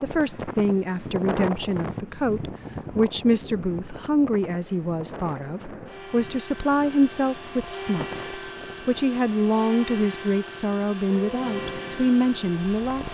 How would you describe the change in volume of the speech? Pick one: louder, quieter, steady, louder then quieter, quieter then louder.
steady.